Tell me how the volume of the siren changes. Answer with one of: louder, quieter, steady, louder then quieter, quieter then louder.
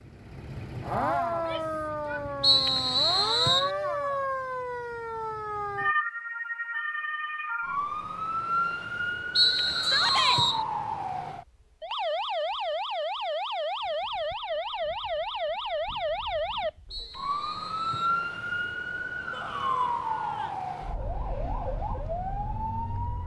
steady.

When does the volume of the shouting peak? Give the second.
10 s.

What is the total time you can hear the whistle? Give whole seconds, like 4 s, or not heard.
4 s.